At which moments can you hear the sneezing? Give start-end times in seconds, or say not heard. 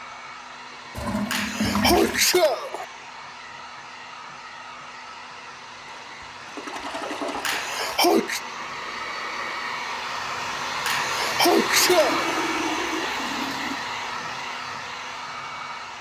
1.3-2.9, 7.5-8.4, 10.8-12.4.